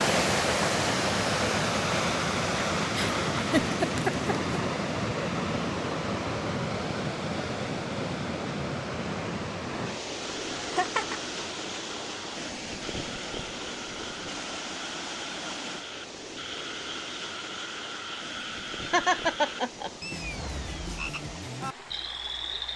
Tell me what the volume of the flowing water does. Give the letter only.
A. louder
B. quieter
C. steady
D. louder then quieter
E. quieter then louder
B.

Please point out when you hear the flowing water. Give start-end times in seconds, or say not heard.
0.0-22.7.